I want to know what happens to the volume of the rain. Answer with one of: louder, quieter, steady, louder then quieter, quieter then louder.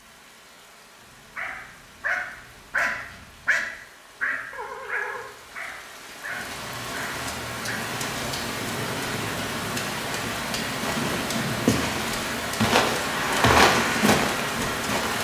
louder.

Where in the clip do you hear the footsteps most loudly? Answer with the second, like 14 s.
14 s.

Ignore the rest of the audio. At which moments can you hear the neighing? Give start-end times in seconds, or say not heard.
4.5-5.4.